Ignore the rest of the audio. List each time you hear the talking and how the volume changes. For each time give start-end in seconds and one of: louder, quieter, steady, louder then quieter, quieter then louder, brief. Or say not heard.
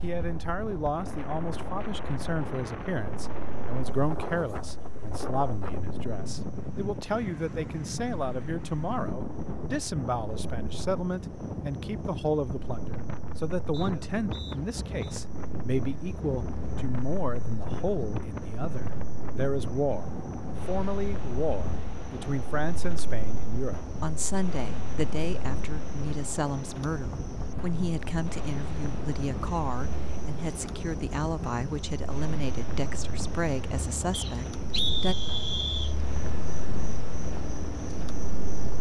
0.0-35.1 steady.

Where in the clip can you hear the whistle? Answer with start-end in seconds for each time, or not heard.
13.7-15.2, 34.1-36.0.